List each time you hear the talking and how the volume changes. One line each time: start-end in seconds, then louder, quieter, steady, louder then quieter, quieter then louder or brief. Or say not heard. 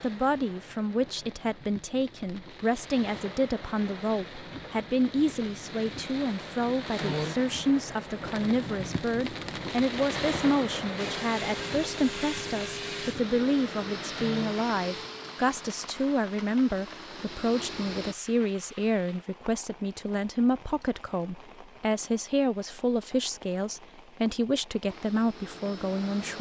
0.0-26.3 steady.